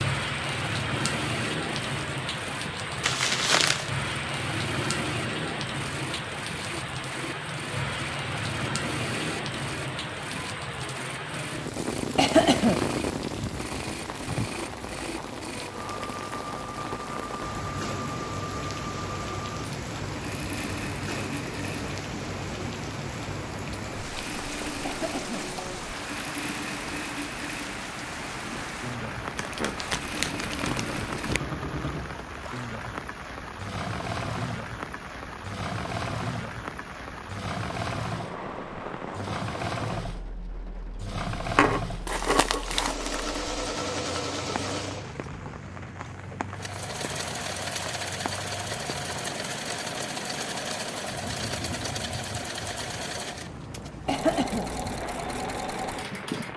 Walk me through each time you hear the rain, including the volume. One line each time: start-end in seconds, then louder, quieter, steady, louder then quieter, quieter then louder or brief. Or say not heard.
0.0-56.5 quieter.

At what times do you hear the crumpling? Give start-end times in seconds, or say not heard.
3.0-3.9, 29.4-31.4, 41.5-43.4.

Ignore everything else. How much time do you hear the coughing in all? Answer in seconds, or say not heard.
2 s.